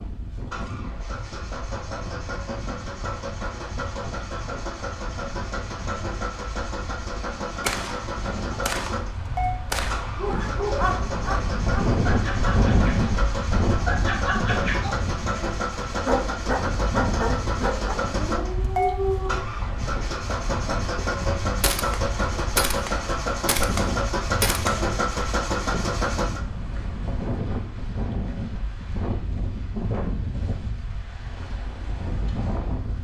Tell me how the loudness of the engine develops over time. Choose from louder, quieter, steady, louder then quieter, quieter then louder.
louder.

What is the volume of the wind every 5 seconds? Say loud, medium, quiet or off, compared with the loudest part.
quiet, quiet, loud, medium, medium, medium, medium.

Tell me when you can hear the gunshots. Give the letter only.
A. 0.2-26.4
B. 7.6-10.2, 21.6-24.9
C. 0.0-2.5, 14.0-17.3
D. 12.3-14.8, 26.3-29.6
B.